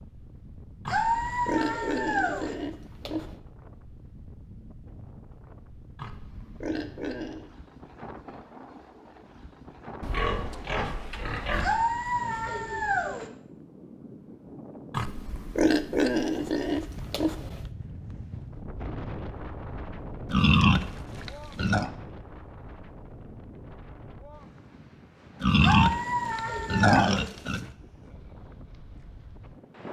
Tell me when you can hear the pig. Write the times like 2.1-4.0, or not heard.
0.8-3.4, 6.0-7.5, 10.0-11.8, 14.9-17.6, 20.3-21.9, 25.4-27.7.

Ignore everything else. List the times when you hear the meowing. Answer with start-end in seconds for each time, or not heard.
0.8-2.5, 11.6-13.3, 25.6-27.3.